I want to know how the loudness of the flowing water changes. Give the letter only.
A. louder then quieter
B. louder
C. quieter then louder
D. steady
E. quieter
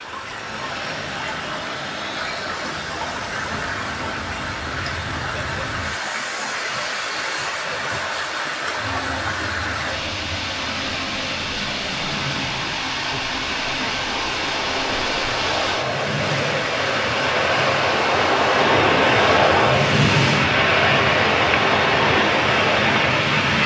B.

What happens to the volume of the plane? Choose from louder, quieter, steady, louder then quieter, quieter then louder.
louder.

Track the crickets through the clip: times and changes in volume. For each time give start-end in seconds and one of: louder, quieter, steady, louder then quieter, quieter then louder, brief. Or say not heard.
not heard.